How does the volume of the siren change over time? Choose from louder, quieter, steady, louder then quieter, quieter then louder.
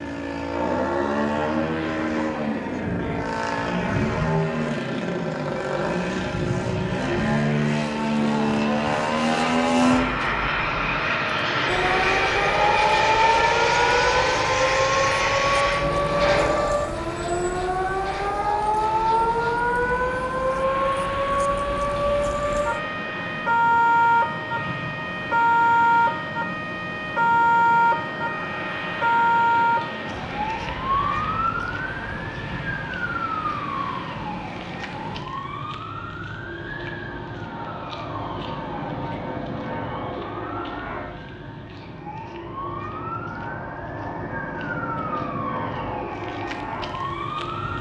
quieter.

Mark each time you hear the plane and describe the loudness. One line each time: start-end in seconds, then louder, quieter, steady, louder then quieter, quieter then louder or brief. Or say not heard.
0.0-47.7 quieter.